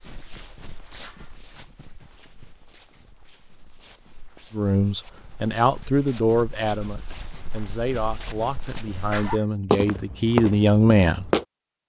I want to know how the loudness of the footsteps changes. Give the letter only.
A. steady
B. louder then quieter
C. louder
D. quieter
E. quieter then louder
E.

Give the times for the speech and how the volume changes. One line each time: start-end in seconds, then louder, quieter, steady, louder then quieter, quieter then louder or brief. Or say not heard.
4.5-11.3 quieter then louder.